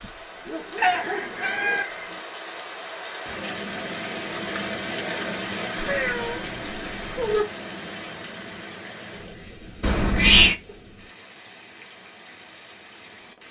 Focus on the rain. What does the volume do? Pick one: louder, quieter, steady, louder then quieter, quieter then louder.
louder then quieter.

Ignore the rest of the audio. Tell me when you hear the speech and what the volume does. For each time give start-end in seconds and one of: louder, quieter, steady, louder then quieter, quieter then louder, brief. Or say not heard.
not heard.